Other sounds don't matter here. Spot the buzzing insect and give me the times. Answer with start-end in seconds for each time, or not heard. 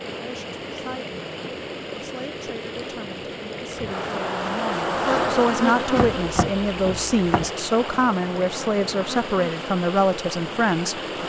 3.6-11.2.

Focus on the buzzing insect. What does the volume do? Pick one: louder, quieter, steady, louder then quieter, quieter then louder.
quieter.